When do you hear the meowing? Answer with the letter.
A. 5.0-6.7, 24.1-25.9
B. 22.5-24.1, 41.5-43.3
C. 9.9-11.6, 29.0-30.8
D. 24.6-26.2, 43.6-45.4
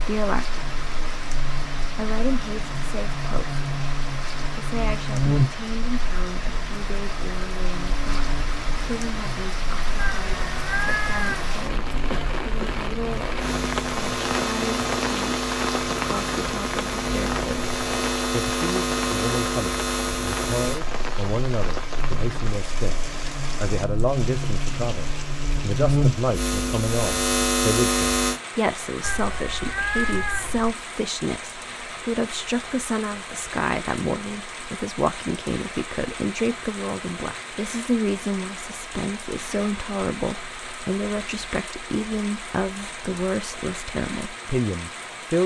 C.